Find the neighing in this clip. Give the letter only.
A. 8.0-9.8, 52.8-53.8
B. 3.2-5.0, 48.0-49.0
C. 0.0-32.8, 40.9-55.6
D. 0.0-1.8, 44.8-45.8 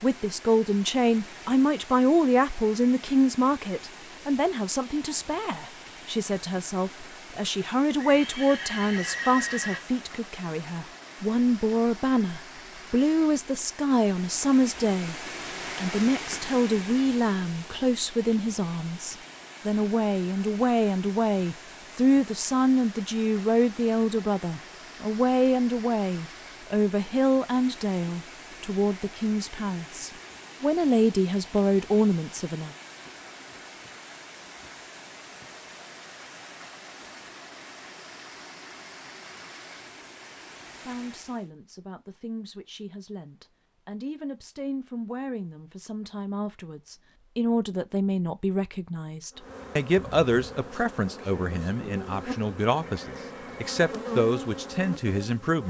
A.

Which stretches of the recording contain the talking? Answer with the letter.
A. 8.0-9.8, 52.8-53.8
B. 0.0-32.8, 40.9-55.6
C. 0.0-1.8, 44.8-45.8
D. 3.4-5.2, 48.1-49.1
B.